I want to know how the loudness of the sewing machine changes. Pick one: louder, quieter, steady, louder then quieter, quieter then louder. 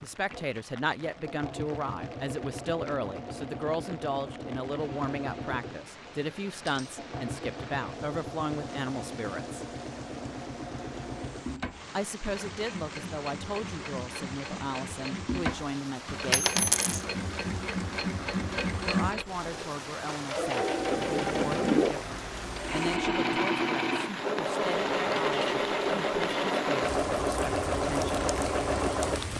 louder.